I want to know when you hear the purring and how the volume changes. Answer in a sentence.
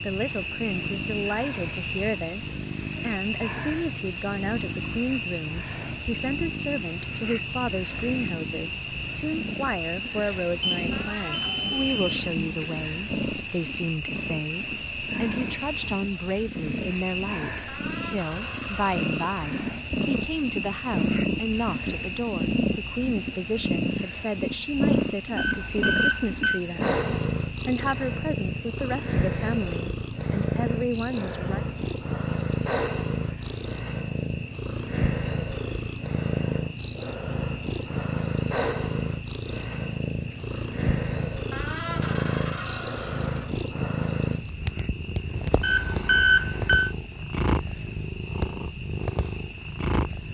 The purring can be heard from 0.0 to 50.3 s, getting louder.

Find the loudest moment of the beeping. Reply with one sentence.
The loudest moment of the beeping is at 46 seconds.